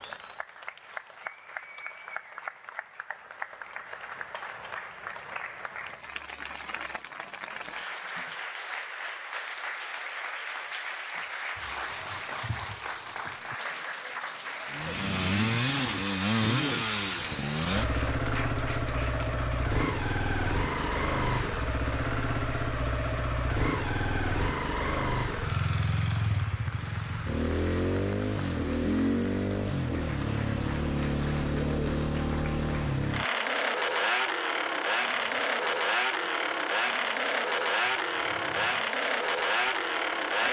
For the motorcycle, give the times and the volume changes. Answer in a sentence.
The motorcycle can be heard from 14.7 to 40.4 s, at a steady volume.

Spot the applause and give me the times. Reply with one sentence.
You can hear the applause from 0.0 to 40.4 s.